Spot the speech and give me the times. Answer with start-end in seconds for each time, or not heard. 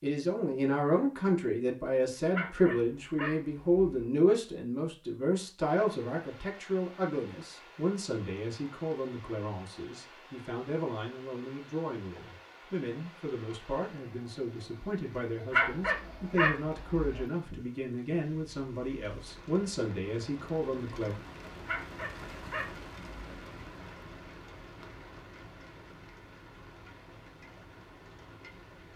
0.0-21.1.